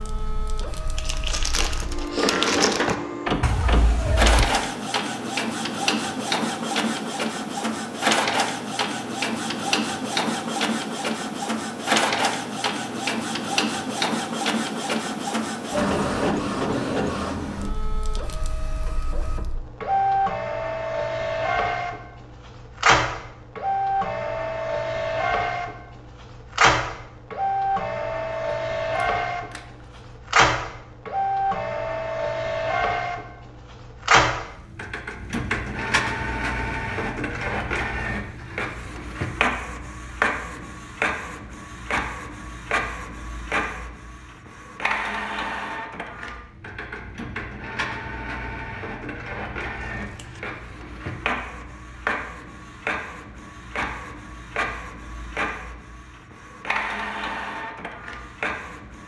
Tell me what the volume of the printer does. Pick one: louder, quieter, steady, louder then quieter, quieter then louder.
quieter.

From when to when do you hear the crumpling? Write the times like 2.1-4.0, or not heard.
0.9-3.0.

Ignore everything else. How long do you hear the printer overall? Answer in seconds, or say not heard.
59 s.